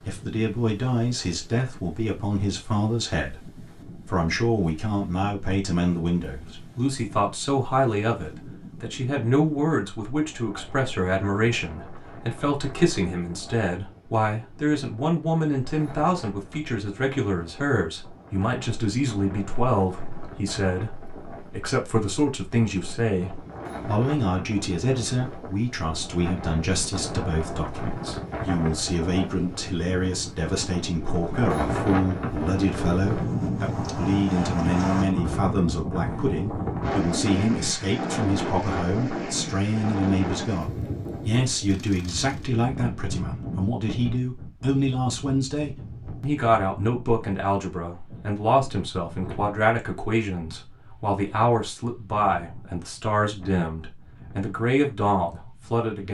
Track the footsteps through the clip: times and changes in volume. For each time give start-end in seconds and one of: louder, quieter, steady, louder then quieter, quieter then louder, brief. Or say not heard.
not heard.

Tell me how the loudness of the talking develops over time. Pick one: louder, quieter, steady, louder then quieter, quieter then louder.
steady.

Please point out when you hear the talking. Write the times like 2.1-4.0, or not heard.
0.1-56.0.